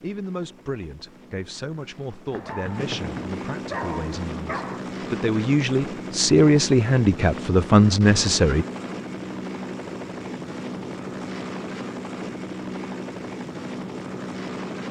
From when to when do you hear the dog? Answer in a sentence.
The dog can be heard from 2.3 to 4.8 s.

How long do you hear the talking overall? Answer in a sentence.
You can hear the talking for 9 seconds altogether.